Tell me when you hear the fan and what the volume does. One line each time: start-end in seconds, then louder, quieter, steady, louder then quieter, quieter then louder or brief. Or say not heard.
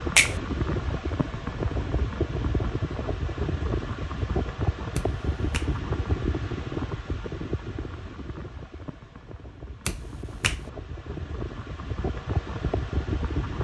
0.0-13.5 quieter then louder.